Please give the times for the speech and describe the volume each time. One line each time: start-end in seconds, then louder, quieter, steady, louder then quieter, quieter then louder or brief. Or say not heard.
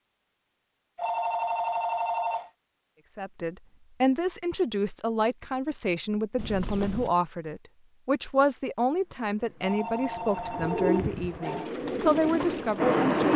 3.1-13.3 steady.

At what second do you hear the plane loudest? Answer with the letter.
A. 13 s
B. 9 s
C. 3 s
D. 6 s
A.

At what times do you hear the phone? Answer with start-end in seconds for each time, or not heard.
0.9-2.5, 6.3-7.1, 9.6-11.7.